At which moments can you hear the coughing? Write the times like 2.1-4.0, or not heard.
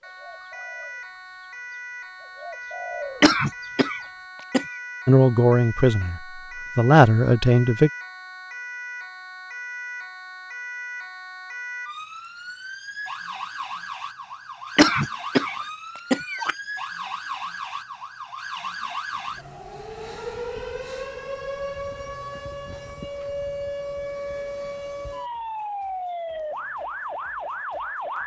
3.2-4.7, 14.8-16.6.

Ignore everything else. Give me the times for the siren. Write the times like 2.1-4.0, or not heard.
0.0-28.2.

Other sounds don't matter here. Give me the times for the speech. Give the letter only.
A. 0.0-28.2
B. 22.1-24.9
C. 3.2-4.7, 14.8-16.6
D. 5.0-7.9
D.